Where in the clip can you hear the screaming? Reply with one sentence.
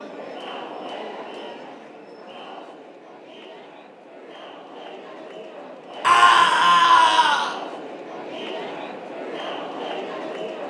The screaming can be heard from 6.0 to 7.5 s.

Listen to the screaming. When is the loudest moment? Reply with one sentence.
The volume of the screaming peaks at 6 seconds.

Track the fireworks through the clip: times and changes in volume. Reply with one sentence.
The fireworks can't be heard in this clip.